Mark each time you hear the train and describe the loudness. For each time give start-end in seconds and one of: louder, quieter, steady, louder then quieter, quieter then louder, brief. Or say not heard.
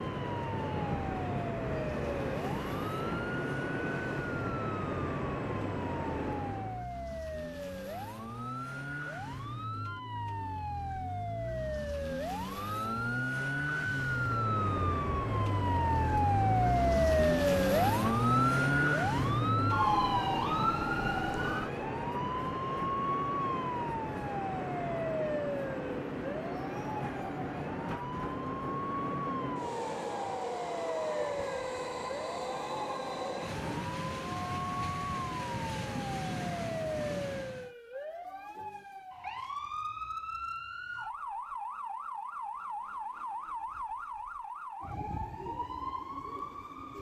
0.0-6.8 steady
14.2-37.8 steady.